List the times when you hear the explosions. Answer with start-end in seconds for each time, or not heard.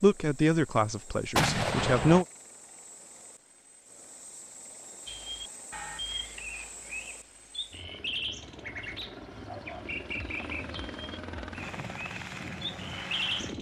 1.4-2.2.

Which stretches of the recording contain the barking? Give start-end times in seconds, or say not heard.
9.4-10.4.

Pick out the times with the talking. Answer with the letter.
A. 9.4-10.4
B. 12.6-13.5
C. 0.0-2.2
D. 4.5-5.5
C.